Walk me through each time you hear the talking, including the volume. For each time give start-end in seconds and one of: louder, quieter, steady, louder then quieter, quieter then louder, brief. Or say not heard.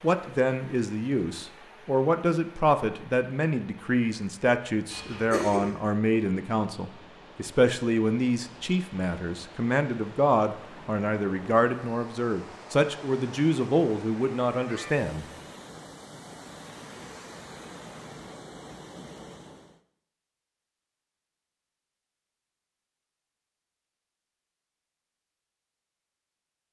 0.0-15.2 steady.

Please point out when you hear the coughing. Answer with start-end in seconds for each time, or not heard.
4.9-5.8.